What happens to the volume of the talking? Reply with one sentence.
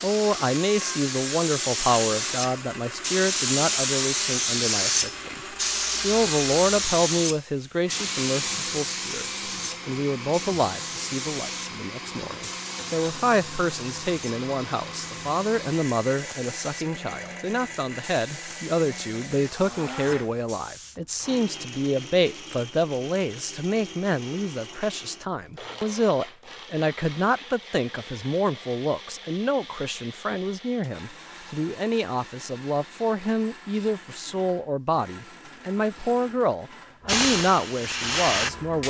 The loudness of the talking stays about the same.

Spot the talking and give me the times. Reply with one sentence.
The talking can be heard from 0.0 to 38.8 s.